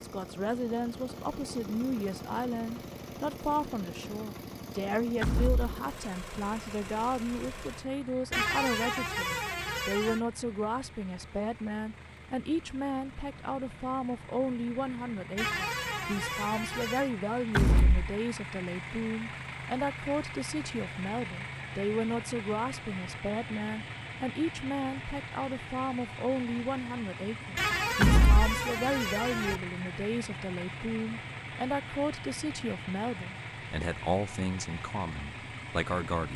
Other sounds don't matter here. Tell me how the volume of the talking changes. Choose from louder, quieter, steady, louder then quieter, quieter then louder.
steady.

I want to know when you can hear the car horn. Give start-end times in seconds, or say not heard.
8.3-10.2, 15.3-17.1, 27.6-29.6.